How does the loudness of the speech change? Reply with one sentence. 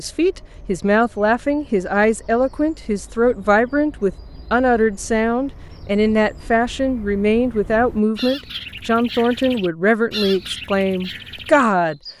The volume of the speech stays about the same.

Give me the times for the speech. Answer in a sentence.
The speech can be heard from 0.0 to 12.0 s.